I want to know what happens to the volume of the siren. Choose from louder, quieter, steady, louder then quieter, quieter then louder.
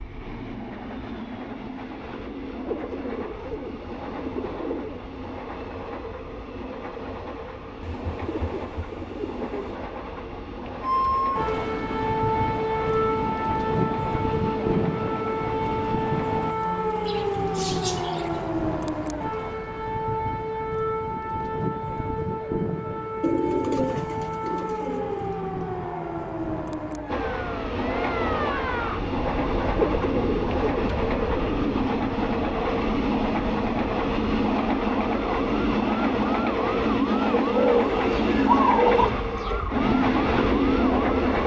quieter.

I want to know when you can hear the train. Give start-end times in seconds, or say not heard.
0.0-16.6, 27.1-41.4.